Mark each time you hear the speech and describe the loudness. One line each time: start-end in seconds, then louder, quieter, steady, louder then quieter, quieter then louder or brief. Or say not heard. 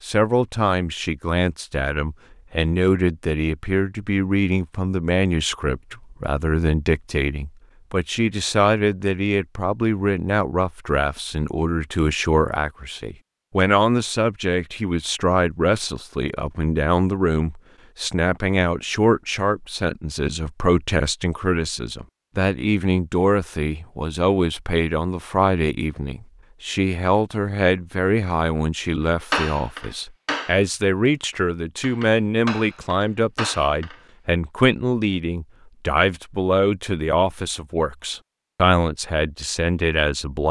0.0-40.4 steady.